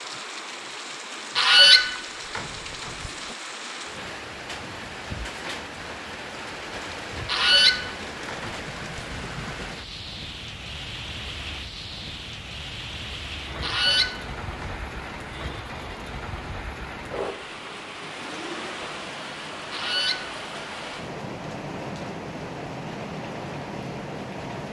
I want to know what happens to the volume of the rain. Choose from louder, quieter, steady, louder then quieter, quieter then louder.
steady.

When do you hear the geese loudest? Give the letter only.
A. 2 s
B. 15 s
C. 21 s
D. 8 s
A.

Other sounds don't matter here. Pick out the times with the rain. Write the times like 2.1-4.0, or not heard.
0.0-24.6.